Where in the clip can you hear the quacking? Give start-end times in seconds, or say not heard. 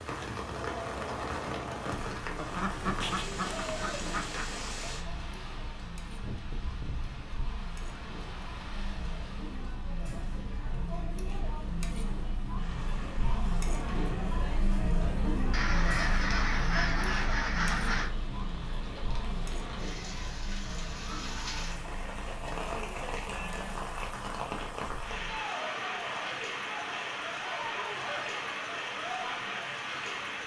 2.4-4.5, 15.5-18.1.